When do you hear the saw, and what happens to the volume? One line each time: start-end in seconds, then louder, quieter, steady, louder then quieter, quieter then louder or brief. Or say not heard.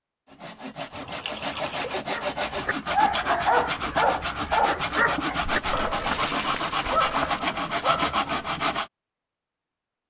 0.2-8.8 louder.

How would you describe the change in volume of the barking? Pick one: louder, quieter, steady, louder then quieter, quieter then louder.
quieter then louder.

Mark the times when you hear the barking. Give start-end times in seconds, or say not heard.
2.1-8.3.